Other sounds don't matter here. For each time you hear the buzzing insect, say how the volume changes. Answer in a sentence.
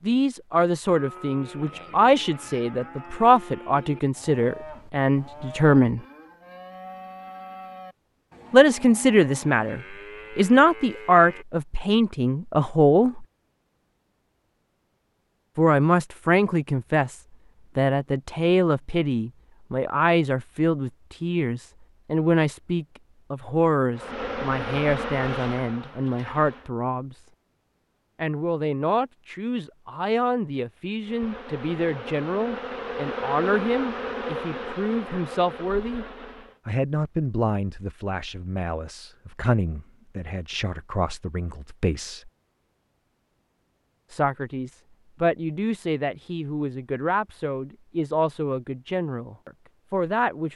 You can hear the buzzing insect briefly from 23.9 to 26.7 s; and from 31.0 to 36.6 s, getting louder then quieter.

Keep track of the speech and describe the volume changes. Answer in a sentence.
The volume of the speech goes down.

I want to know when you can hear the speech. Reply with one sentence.
The speech can be heard from 0.0 to 6.0 s, from 8.5 to 13.2 s, from 15.6 to 27.2 s, from 28.1 to 36.0 s, from 36.6 to 42.3 s and from 44.1 to 50.5 s.